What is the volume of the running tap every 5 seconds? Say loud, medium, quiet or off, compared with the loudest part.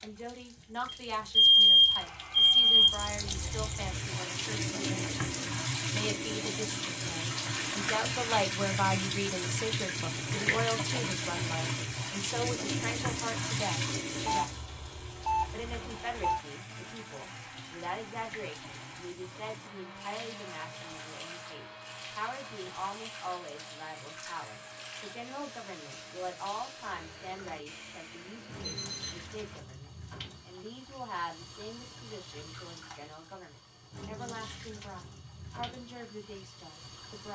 medium, loud, loud, quiet, quiet, quiet, quiet, quiet.